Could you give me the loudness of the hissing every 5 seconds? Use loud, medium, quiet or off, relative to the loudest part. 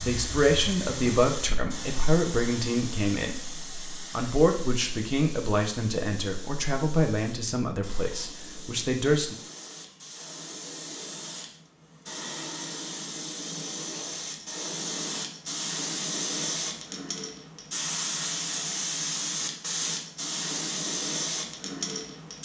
medium, quiet, medium, loud, loud.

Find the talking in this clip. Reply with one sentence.
The talking can be heard from 0.0 to 9.3 s.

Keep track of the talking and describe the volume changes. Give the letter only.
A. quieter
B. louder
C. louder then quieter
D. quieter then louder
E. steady
A.